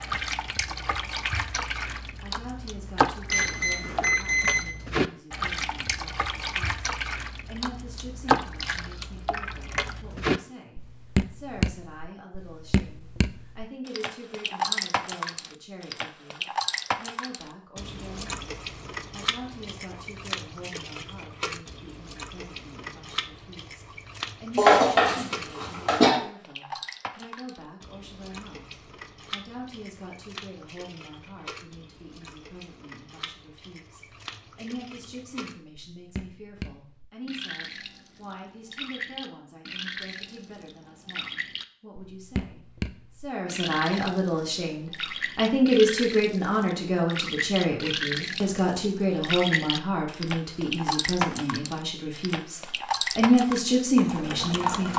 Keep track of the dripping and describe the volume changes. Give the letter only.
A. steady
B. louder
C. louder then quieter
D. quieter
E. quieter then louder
E.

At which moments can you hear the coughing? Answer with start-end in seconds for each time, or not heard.
24.6-26.1.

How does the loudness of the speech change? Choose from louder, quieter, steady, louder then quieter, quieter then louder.
louder.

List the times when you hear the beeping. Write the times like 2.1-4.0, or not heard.
3.3-4.7.